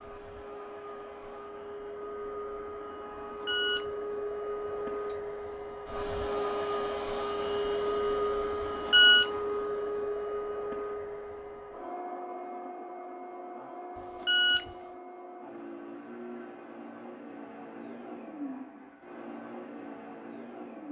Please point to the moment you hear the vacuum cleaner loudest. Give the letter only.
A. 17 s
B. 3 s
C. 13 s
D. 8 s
D.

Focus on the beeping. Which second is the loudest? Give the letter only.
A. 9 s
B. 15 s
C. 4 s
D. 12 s
A.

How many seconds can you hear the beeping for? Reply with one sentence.
The beeping can be heard for 3 seconds in total.